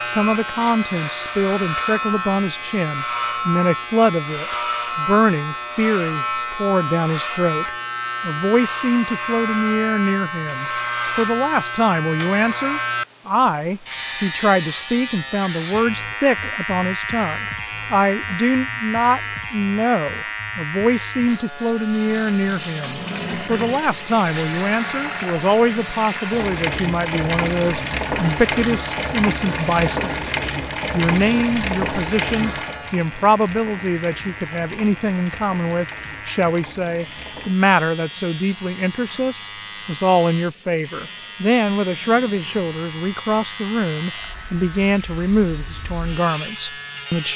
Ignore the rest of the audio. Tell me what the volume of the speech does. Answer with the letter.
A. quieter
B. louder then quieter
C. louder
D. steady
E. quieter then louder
D.